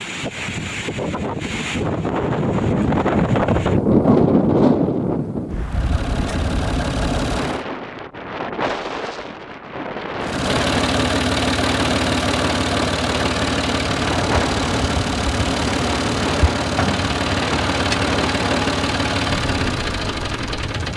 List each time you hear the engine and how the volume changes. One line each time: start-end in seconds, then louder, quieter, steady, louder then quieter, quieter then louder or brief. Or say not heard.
5.7-7.7 brief
10.2-20.9 steady.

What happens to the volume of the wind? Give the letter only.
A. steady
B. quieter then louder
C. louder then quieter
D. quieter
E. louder
D.